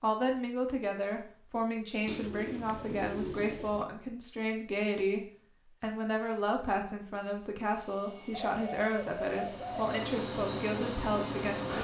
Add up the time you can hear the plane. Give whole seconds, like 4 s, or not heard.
4 s.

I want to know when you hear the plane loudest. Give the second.
11 s.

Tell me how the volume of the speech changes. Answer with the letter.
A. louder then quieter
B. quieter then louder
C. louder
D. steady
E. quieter
D.